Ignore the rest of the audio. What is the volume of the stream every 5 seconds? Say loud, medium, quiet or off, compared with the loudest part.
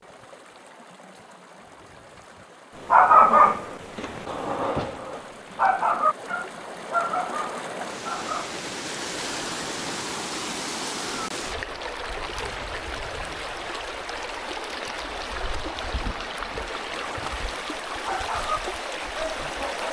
quiet, loud, loud, loud.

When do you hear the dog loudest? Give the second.
3 s.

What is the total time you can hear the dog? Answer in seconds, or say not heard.
9 s.